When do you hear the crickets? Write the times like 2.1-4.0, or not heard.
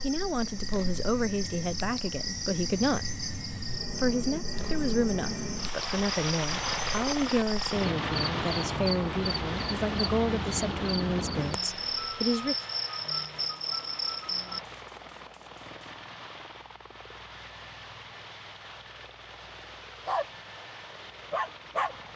0.0-14.6.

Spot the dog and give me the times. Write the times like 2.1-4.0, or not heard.
20.1-22.1.